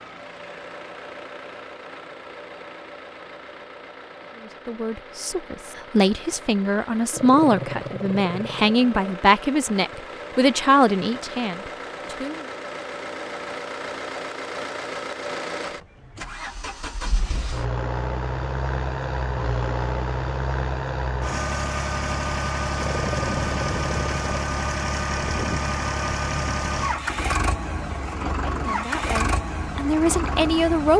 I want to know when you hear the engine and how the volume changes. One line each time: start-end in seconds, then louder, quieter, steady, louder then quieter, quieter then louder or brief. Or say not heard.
0.0-30.9 louder.